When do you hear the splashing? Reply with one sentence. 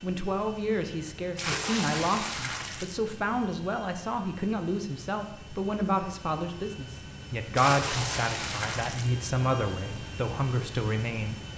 You can hear the splashing from 1.4 to 3.0 s and from 7.5 to 9.1 s.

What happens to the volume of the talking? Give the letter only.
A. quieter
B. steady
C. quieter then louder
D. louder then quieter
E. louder
B.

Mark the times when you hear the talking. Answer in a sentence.
The talking can be heard from 0.0 to 11.4 s.